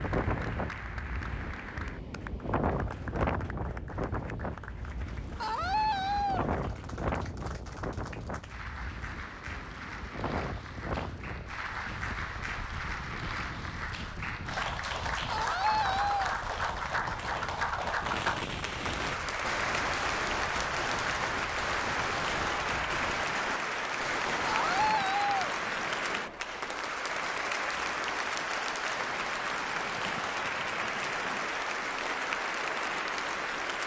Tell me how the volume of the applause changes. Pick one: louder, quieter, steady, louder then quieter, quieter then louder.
louder.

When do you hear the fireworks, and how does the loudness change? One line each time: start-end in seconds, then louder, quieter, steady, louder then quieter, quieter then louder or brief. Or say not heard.
18.0-25.1 steady.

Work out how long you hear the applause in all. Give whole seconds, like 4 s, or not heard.
34 s.